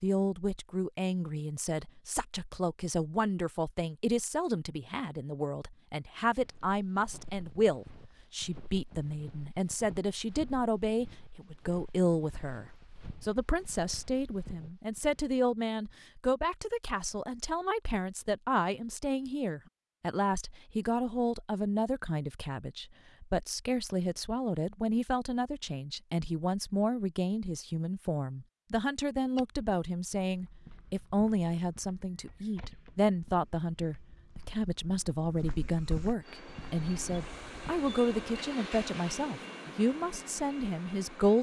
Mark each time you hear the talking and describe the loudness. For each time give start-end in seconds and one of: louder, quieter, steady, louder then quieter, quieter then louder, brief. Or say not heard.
0.0-41.3 steady.